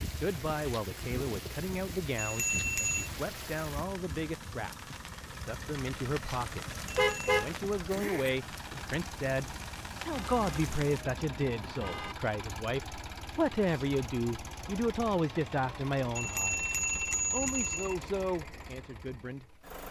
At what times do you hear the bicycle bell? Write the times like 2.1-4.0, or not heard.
2.1-3.1, 7.0-7.5, 16.1-17.9.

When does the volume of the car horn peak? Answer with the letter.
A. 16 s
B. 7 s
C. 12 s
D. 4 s
B.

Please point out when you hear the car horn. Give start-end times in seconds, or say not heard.
7.0-8.3, 10.1-12.2.